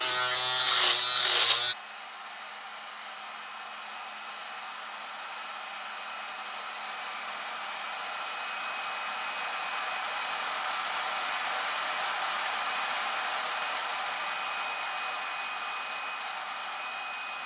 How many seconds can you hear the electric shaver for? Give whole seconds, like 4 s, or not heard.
2 s.